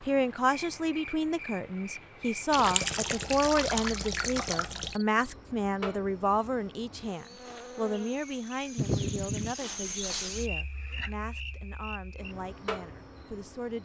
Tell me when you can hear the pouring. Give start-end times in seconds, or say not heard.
2.5-4.9, 8.8-9.6.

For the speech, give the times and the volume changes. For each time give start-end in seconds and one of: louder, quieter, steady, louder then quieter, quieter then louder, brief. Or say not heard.
0.0-13.8 quieter.